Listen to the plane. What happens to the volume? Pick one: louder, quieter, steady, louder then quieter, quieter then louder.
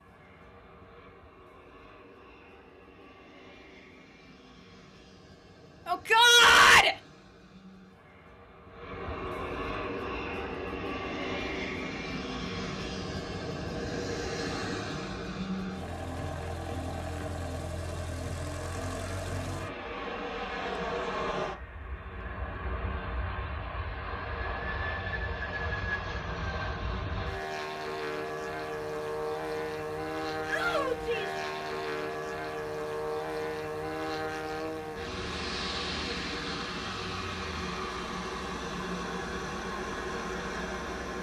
louder.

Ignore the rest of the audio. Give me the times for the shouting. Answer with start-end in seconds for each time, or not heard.
5.8-7.0, 30.4-31.4.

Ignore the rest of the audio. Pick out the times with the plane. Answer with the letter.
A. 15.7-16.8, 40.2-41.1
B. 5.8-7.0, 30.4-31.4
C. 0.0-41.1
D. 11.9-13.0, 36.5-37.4
C.